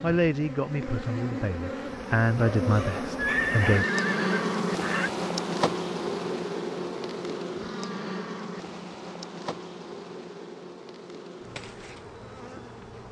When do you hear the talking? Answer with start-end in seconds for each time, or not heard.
0.0-3.9.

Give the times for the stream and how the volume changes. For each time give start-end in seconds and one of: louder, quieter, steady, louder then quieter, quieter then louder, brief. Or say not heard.
not heard.